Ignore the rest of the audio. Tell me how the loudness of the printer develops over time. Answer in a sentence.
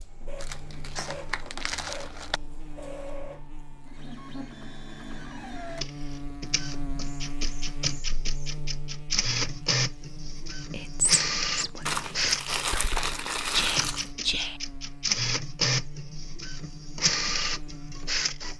The loudness of the printer goes up.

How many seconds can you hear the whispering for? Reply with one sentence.
You can hear the whispering for 4 seconds altogether.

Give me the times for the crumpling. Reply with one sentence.
The crumpling can be heard from 0.3 to 2.4 s and from 11.8 to 14.1 s.